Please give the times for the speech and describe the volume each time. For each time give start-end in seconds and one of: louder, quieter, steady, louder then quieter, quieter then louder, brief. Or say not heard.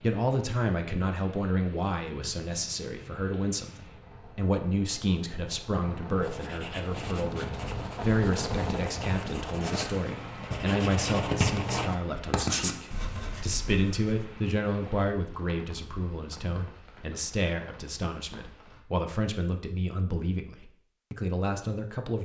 0.0-22.2 steady.